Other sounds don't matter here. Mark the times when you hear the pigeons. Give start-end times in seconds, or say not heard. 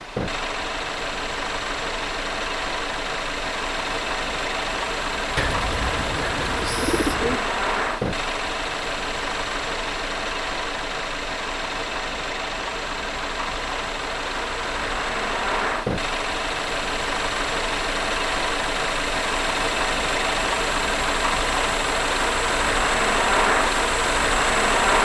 5.3-7.4.